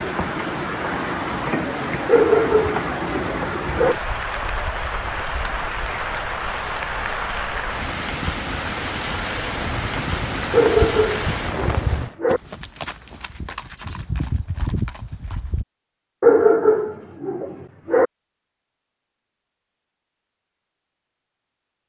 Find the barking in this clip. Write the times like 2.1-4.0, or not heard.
2.0-4.0, 10.5-12.4, 16.2-18.1.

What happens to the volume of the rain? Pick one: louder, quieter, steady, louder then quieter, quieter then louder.
steady.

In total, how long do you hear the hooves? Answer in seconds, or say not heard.
6 s.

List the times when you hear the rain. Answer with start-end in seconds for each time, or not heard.
0.0-12.2.